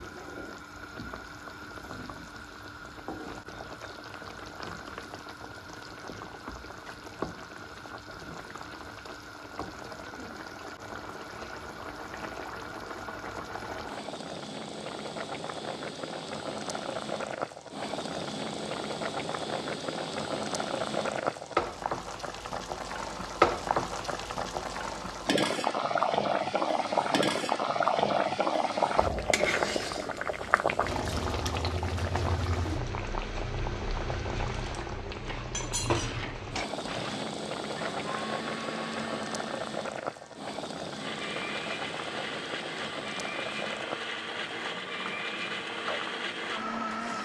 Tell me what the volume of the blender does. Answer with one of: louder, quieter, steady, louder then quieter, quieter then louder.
louder.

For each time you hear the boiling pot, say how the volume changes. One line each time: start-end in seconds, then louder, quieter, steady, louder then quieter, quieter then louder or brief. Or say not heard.
0.0-47.1 louder then quieter.